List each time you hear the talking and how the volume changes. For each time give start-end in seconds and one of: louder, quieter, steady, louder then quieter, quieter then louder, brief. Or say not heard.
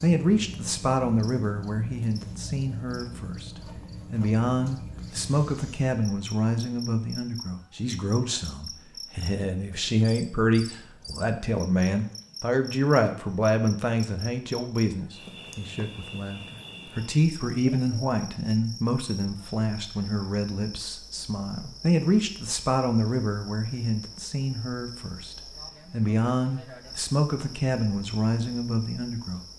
0.0-29.4 steady.